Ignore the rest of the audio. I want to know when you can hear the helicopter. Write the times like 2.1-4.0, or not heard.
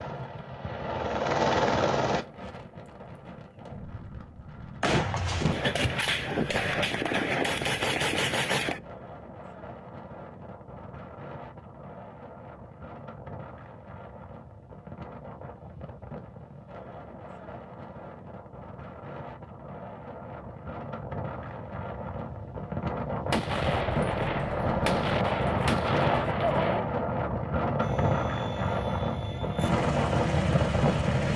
0.0-2.2, 27.8-31.3.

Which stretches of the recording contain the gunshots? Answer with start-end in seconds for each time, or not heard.
4.8-8.8, 23.3-26.8.